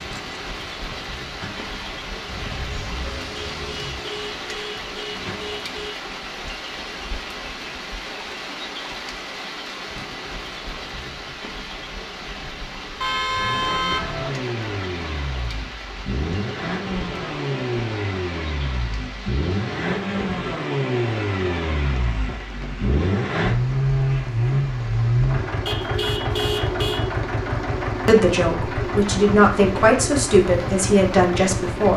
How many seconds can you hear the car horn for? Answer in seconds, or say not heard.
5 s.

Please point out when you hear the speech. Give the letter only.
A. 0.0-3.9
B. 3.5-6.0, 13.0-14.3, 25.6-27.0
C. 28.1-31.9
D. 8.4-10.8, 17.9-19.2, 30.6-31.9
C.